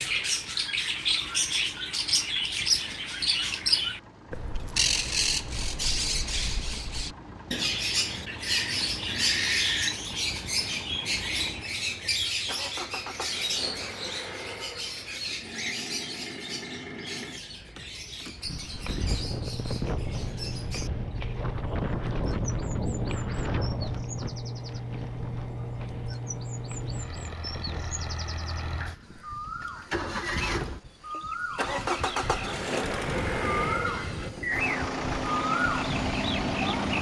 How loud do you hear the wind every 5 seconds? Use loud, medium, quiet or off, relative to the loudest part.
off, off, off, loud, loud, medium, medium, loud.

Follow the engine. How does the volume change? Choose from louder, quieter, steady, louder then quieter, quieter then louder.
louder.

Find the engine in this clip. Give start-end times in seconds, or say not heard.
0.0-36.9.